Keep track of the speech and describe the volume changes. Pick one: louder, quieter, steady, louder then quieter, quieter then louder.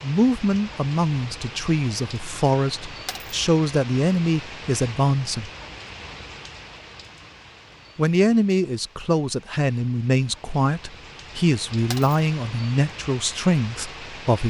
steady.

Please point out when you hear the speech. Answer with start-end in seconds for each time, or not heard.
0.0-5.5, 8.0-14.4.